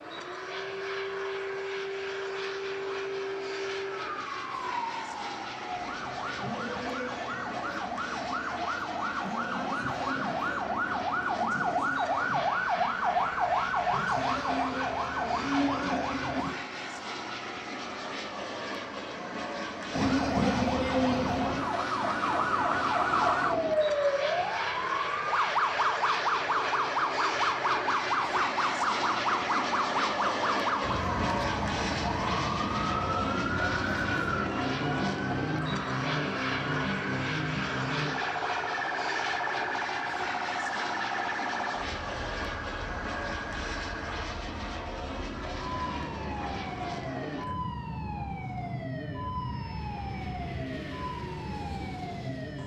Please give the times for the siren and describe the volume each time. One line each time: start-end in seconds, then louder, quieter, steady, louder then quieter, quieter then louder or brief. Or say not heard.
0.0-16.6 louder
19.9-52.6 quieter.